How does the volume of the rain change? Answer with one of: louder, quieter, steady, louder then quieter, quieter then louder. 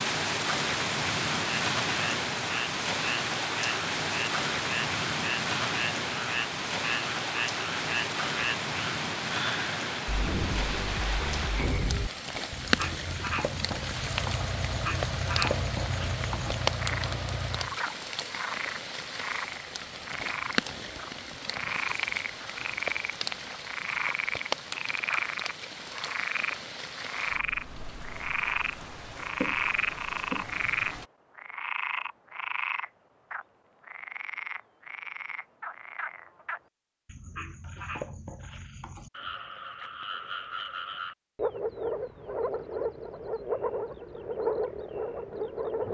quieter.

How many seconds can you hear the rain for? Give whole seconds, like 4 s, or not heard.
31 s.